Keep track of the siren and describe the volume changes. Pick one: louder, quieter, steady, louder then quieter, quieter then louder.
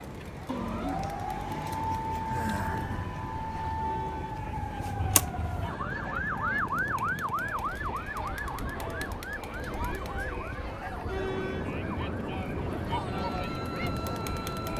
quieter.